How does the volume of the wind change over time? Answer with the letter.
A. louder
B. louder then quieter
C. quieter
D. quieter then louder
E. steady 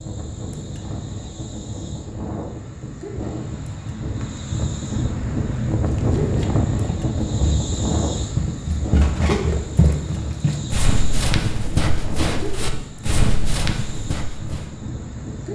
B.